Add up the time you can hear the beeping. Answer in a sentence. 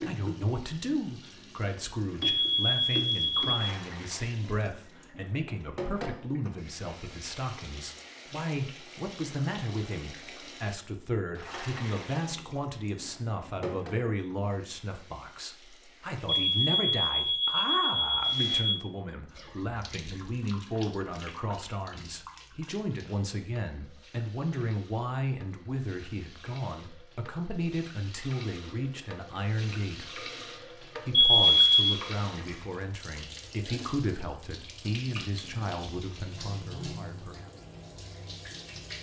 You can hear the beeping for 5 seconds altogether.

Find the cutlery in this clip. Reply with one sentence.
The cutlery can't be heard in this clip.